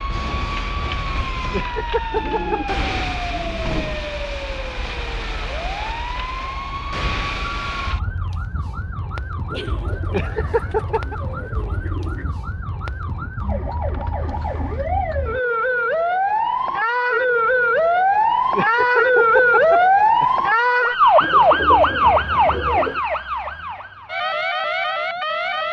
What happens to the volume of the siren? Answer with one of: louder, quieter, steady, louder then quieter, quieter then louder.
louder.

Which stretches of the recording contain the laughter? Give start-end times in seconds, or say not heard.
1.5-2.8, 10.1-11.2, 18.5-20.4.